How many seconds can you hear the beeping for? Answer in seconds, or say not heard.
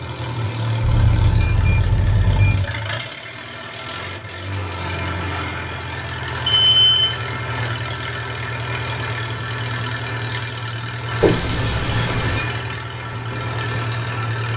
4 s.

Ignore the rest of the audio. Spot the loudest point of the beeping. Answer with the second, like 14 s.
7 s.